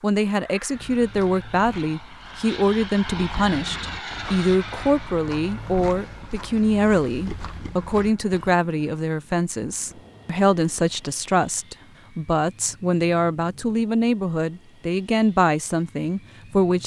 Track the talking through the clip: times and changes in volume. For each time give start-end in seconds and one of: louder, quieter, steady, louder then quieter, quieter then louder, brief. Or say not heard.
0.0-16.8 steady.